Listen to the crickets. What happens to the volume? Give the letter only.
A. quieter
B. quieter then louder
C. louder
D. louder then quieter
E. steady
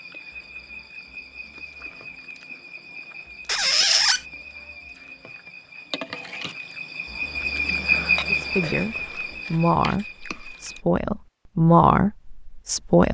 D.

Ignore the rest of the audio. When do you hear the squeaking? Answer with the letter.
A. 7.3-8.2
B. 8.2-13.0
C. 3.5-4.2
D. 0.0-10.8
C.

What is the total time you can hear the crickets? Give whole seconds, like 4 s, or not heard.
11 s.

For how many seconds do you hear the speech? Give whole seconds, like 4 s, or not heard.
5 s.